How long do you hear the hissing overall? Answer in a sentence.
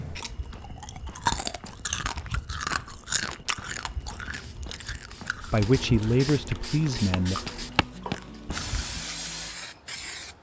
You can hear the hissing for 6 seconds altogether.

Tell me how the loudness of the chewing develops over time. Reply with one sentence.
The volume of the chewing goes down.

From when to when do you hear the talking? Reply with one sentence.
You can hear the talking from 5.4 to 7.4 s.